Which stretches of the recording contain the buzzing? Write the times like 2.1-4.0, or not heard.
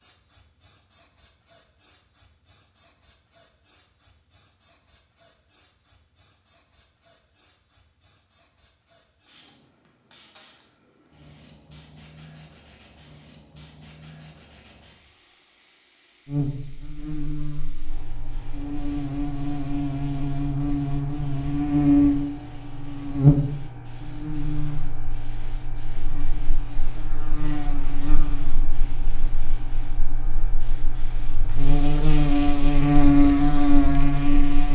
16.2-34.7.